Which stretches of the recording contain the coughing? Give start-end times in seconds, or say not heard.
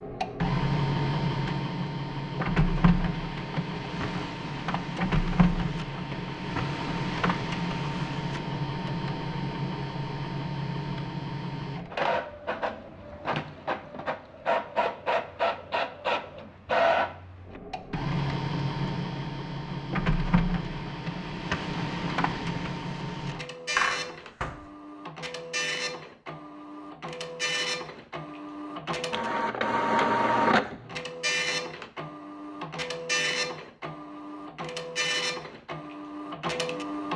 23.8-24.6.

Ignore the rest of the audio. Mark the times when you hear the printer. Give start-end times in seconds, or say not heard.
0.0-37.1.